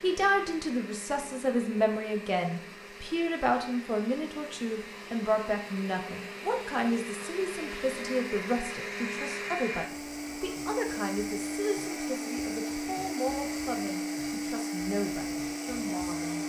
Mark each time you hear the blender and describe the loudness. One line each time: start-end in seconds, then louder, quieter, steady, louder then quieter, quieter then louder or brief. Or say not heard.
0.0-16.4 louder.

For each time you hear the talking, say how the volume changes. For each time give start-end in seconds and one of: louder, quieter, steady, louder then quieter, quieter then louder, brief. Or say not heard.
0.0-16.4 quieter.